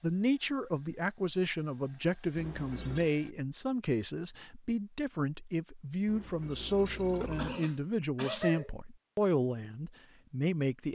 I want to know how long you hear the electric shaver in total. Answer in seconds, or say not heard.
not heard.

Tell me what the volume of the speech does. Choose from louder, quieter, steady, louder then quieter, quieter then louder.
steady.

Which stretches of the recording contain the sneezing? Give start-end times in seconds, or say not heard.
7.0-8.8.